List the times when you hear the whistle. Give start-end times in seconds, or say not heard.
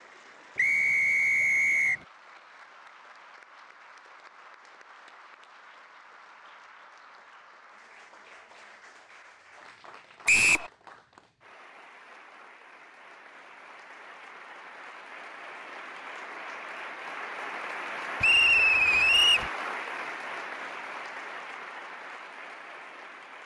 0.6-2.0, 10.2-10.7, 18.2-19.5.